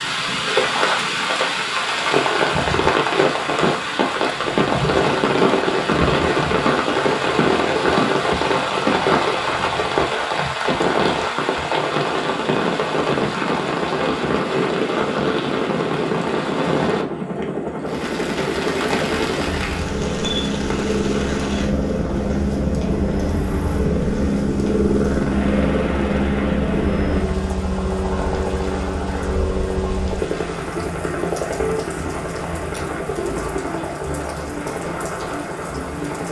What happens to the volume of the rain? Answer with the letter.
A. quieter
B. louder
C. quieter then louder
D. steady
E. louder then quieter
A.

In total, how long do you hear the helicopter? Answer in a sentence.
You can hear the helicopter for 36 seconds altogether.